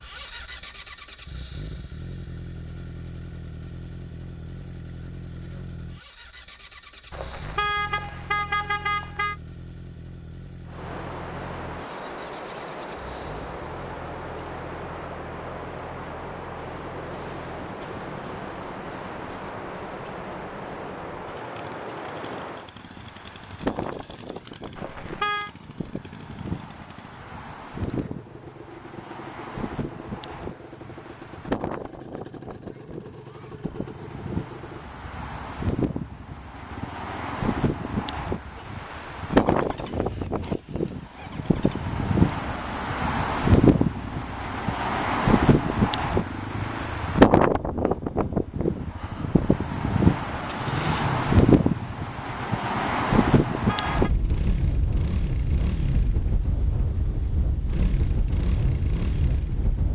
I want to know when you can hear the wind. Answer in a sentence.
The wind can be heard from 10.7 to 59.9 s.